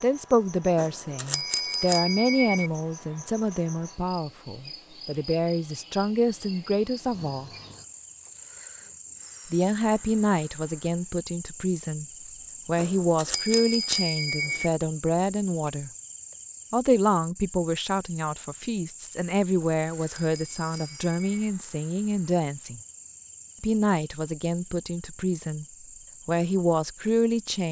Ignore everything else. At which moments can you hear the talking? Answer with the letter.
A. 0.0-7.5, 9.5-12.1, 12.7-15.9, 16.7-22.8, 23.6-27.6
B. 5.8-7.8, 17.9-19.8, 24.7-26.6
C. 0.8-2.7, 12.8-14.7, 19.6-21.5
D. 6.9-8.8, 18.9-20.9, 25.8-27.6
A.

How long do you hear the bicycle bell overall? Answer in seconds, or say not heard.
6 s.